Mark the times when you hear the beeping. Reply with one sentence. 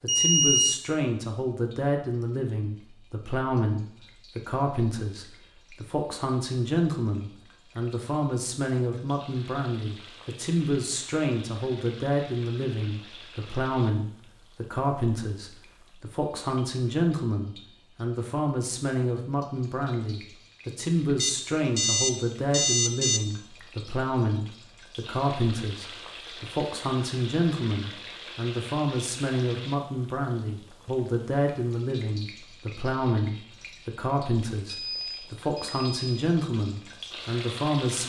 The beeping can be heard from 0.1 to 0.8 s, from 21.2 to 23.2 s and from 34.6 to 36.1 s.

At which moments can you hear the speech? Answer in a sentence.
The speech can be heard from 0.0 to 38.0 s.